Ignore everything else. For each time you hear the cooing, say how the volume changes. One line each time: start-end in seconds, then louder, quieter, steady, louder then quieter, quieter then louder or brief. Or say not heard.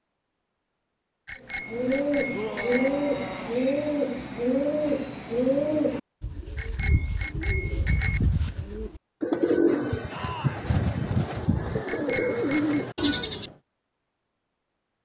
1.6-13.6 quieter then louder.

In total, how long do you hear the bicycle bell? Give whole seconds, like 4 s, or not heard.
4 s.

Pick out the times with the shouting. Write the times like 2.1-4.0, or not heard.
2.3-3.6, 10.1-10.7.